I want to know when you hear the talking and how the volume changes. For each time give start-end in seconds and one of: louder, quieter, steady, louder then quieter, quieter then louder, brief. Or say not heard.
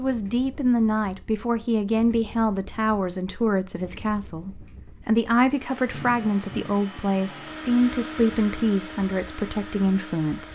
0.0-10.5 steady.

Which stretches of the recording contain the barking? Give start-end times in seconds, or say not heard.
not heard.